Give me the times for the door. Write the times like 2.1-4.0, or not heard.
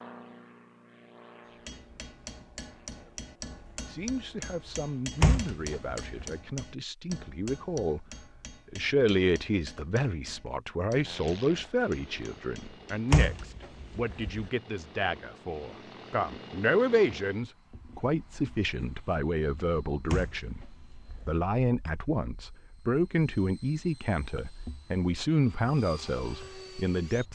5.2-6.2, 13.1-14.4, 20.1-21.4.